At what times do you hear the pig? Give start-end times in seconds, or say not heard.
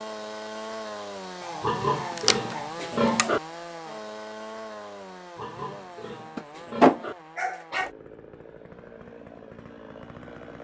1.6-3.4, 5.3-7.2.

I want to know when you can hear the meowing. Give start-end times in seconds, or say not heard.
not heard.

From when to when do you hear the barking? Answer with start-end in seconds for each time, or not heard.
1.4-3.3, 6.3-7.9.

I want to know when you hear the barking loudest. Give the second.
7 s.